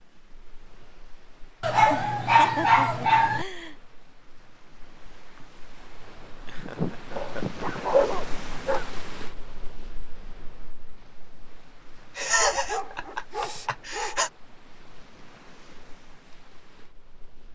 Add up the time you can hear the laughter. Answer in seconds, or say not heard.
5 s.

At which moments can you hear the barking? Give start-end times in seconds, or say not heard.
1.6-3.5, 7.2-8.8, 12.3-14.2.